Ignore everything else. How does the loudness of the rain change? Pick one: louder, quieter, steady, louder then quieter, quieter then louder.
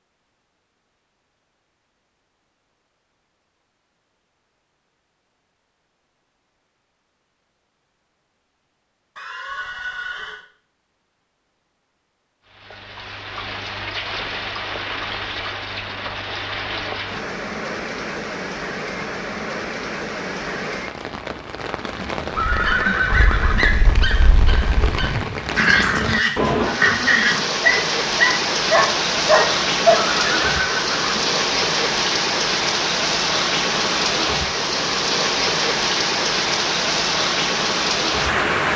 louder.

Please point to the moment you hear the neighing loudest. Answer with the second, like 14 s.
23 s.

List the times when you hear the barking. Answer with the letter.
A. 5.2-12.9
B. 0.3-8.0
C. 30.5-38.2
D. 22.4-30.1
D.